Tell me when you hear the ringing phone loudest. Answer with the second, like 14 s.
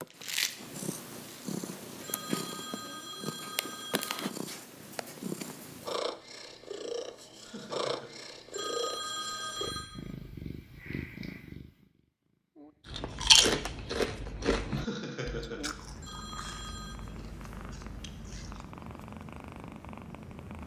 9 s.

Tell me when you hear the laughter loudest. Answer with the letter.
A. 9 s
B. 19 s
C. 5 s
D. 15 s
D.